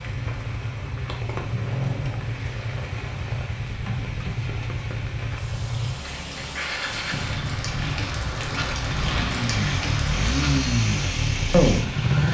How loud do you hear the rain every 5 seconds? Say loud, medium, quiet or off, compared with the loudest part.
medium, loud, loud.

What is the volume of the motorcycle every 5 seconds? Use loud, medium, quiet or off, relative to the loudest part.
medium, medium, loud.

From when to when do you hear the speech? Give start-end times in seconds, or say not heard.
11.5-12.1.